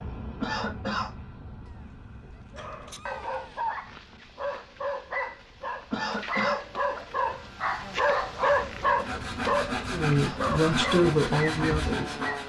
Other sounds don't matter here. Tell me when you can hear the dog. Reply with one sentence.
You can hear the dog from 2.5 to 12.4 s.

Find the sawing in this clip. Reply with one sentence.
The sawing can be heard from 8.9 to 12.4 s.